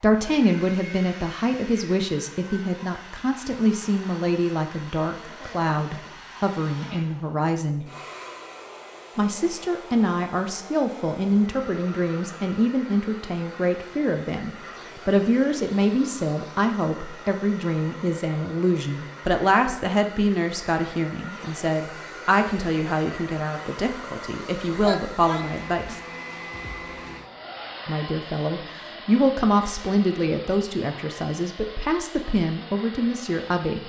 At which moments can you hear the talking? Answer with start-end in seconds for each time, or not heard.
0.0-7.9, 9.2-26.0, 27.9-33.8.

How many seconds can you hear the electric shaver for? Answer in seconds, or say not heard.
not heard.